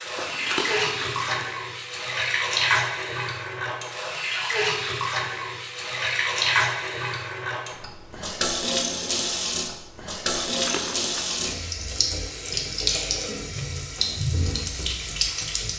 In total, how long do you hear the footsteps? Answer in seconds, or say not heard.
not heard.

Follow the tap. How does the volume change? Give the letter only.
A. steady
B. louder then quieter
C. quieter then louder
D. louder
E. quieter
A.